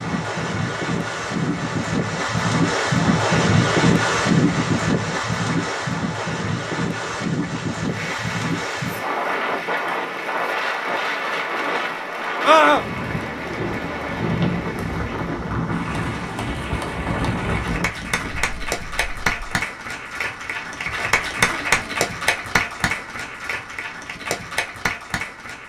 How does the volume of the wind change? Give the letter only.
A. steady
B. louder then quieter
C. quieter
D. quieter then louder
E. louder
C.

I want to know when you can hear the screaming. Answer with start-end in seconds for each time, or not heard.
12.4-12.8.